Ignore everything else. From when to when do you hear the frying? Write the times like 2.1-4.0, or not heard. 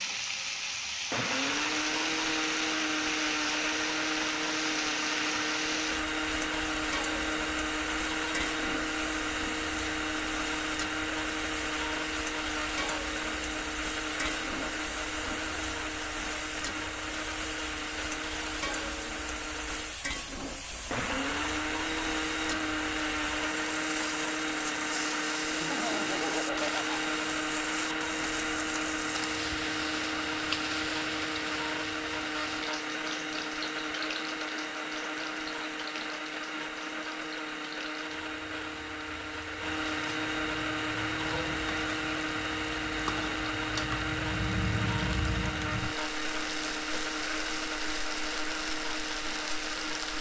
0.0-50.1.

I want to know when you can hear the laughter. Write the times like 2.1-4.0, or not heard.
25.6-27.1.